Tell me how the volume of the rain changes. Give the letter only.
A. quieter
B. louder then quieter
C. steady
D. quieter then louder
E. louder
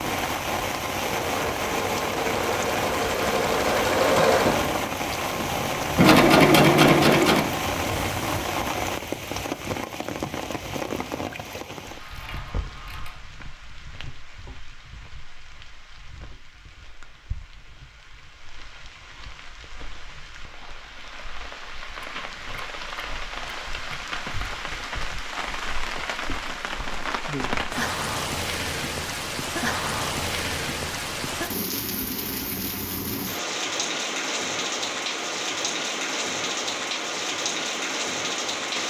D.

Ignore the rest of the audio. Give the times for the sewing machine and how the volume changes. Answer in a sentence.
You can hear the sewing machine from 0.0 to 8.4 s, getting louder.